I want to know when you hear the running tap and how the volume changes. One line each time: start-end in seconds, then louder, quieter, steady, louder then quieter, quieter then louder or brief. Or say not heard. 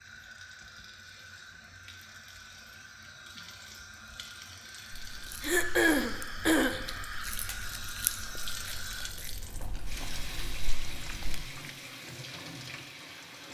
0.0-13.4 louder.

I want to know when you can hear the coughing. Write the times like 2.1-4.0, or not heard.
5.4-6.8.